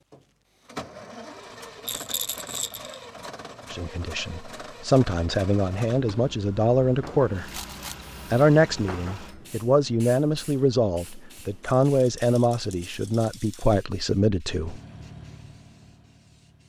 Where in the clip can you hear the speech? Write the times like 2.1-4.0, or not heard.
3.7-7.5, 8.3-14.8.